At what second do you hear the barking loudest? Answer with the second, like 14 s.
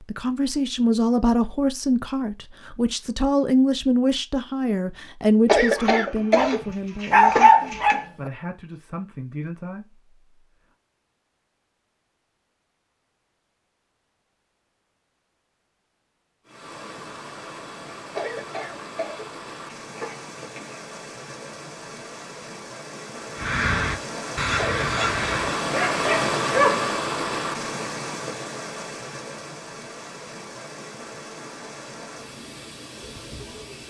7 s.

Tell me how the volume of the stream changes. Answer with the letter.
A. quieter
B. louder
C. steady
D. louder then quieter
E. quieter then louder
D.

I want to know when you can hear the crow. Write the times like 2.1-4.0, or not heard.
23.4-25.6.